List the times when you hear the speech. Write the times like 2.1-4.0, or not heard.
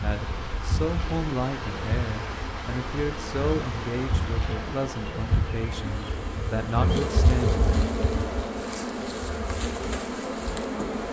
0.0-7.8.